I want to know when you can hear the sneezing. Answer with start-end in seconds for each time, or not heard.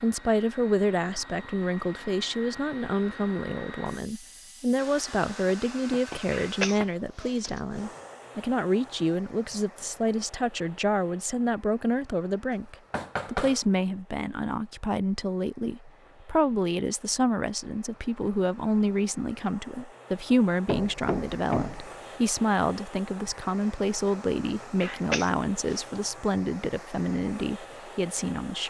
6.3-8.0, 24.8-26.0.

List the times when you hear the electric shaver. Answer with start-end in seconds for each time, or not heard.
not heard.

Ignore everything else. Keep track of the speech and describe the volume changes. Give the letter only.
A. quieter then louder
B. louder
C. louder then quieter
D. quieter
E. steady
E.